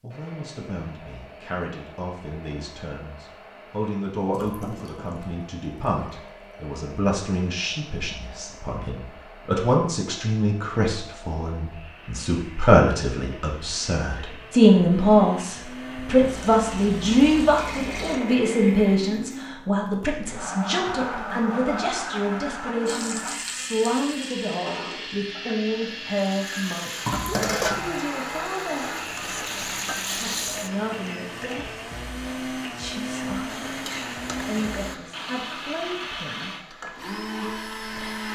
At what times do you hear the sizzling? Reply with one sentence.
You can hear the sizzling from 22.9 to 30.7 s and from 33.5 to 38.3 s.